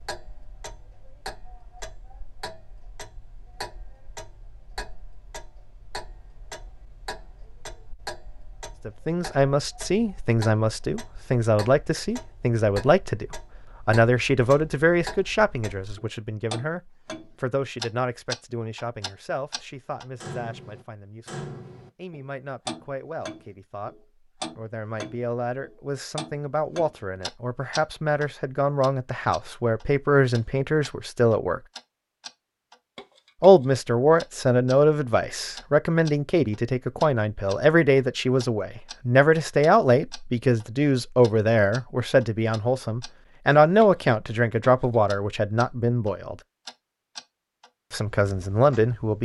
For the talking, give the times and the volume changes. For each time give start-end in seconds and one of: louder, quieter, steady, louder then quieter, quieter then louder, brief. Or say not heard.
8.8-21.3 quieter
21.9-31.6 louder
33.4-46.4 steady
47.9-49.2 brief.